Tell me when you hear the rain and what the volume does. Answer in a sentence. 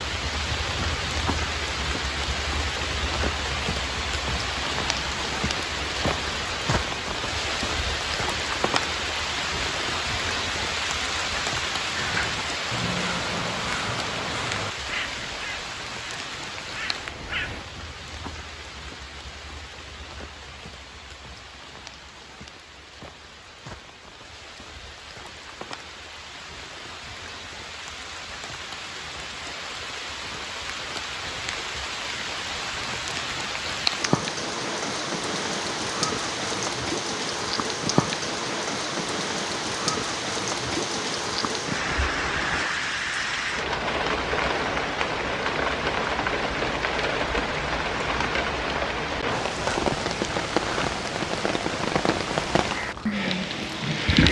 The rain can be heard from 0.0 to 54.2 s, getting quieter then louder.